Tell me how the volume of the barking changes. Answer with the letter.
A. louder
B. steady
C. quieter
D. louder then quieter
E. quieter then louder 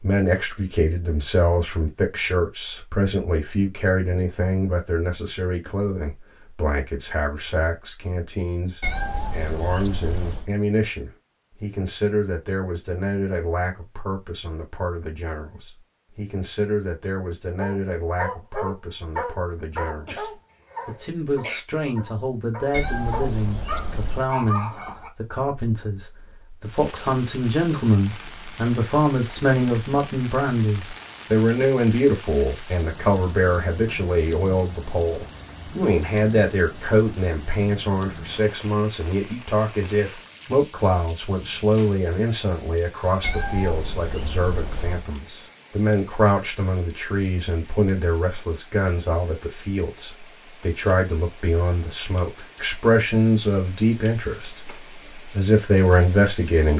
E.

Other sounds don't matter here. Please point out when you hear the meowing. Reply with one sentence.
You can hear the meowing from 8.8 to 10.5 s, from 22.7 to 24.3 s and from 43.2 to 45.0 s.